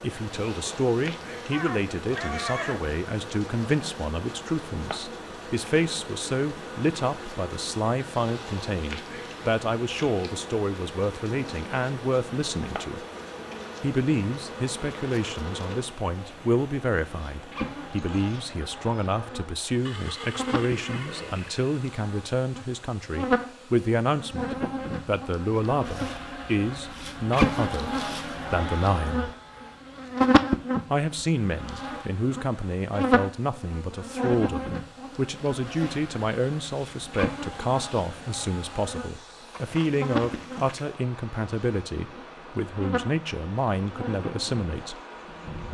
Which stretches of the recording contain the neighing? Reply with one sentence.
You can hear the neighing from 1.5 to 3.0 s, from 19.9 to 21.8 s and from 39.5 to 40.9 s.